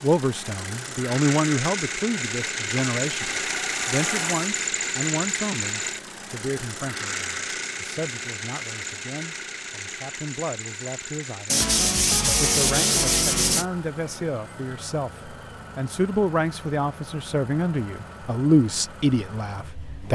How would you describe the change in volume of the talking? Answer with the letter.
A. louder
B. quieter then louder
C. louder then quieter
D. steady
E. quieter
B.